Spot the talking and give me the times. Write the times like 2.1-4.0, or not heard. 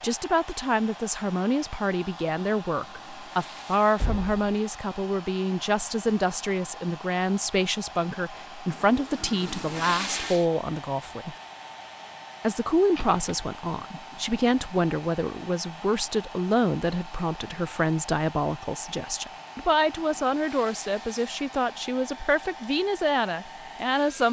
0.0-11.3, 12.4-24.2.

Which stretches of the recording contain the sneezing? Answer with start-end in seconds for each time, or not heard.
not heard.